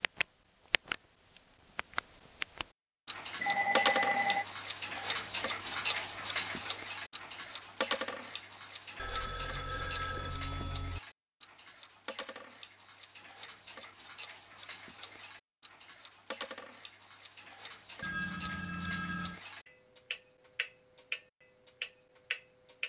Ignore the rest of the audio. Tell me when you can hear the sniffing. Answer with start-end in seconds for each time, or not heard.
not heard.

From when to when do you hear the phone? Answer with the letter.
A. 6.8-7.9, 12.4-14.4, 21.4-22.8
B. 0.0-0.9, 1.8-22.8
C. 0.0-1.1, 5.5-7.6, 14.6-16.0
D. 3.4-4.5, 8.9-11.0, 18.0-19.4
D.